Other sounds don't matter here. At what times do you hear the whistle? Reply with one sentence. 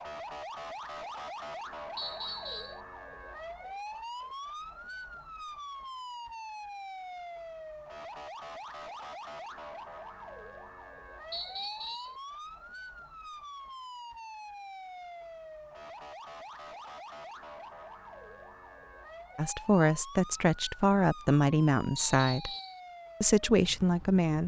The whistle can be heard from 1.9 to 2.8 s, from 11.3 to 12.2 s and from 21.9 to 22.8 s.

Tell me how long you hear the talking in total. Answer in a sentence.
You can hear the talking for 4 seconds altogether.